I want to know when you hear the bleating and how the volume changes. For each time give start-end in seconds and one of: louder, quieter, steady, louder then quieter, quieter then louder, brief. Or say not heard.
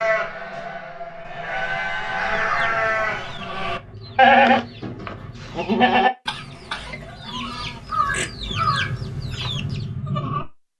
0.0-10.6 louder then quieter.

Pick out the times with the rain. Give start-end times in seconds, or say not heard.
not heard.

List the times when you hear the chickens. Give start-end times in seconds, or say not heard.
2.1-9.9.